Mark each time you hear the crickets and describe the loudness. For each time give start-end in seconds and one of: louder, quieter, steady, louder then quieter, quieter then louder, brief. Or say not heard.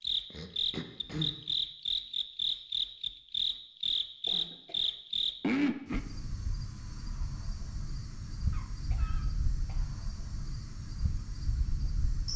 0.0-12.3 quieter.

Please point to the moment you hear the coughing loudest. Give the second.
1 s.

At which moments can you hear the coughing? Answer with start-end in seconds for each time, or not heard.
0.3-1.4, 4.2-4.9, 8.5-9.9.